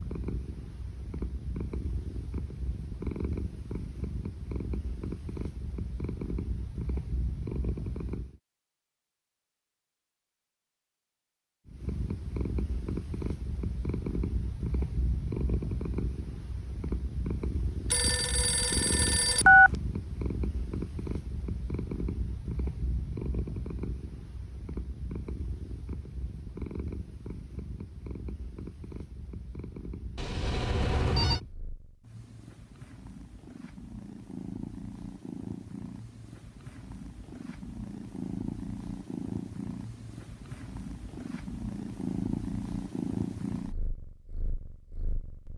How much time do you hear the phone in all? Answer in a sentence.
You can hear the phone for 3 seconds altogether.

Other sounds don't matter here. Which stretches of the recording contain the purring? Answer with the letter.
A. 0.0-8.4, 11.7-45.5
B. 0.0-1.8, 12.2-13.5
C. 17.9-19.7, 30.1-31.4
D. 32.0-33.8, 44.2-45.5
A.